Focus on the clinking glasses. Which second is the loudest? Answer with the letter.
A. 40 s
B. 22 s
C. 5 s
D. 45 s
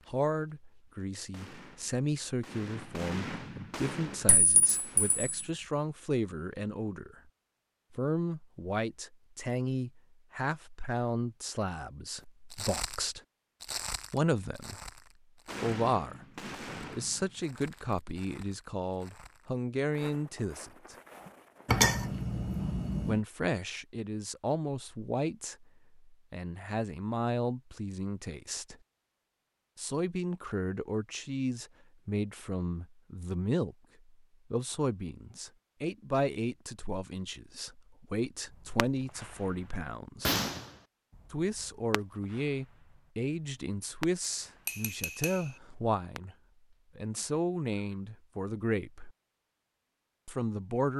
B.